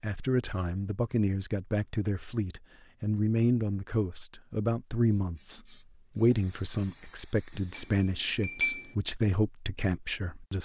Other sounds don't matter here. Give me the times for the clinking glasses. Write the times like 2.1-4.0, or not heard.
7.5-8.9.